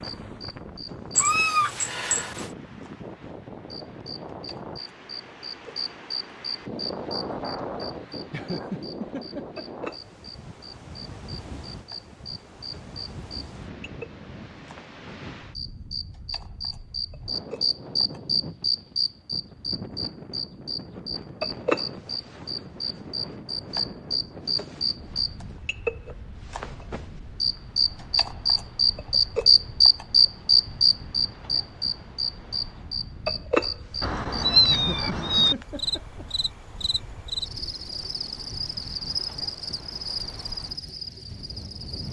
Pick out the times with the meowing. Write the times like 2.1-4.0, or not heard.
1.1-2.5, 34.0-35.5.